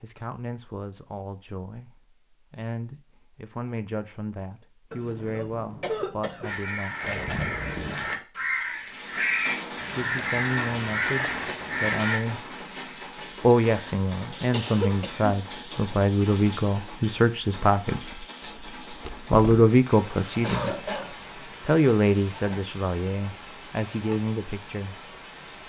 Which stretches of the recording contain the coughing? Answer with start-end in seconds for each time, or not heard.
4.9-6.5, 13.8-15.3, 20.4-21.1.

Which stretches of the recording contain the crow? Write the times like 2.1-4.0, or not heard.
6.4-12.2.